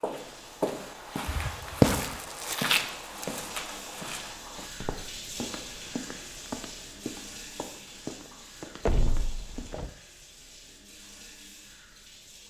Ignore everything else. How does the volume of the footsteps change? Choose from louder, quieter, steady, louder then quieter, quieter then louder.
quieter.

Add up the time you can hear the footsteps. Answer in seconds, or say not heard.
10 s.